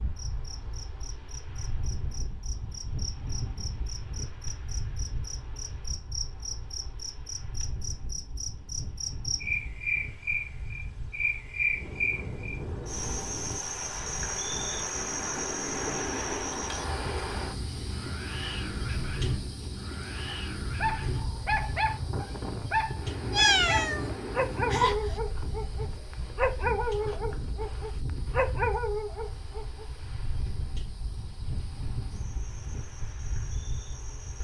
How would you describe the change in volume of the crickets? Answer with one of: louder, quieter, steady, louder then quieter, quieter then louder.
louder then quieter.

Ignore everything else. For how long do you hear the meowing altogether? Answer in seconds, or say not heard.
2 s.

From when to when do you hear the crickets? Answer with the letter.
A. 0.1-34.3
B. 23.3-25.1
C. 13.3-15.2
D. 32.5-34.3
A.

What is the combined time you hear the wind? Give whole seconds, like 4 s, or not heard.
34 s.